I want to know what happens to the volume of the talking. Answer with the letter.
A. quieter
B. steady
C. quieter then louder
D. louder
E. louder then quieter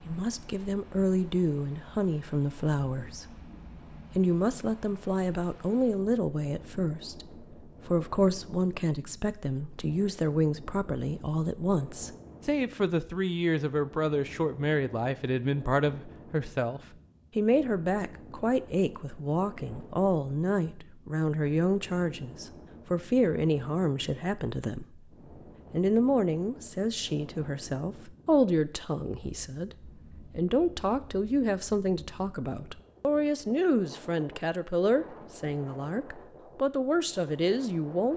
B.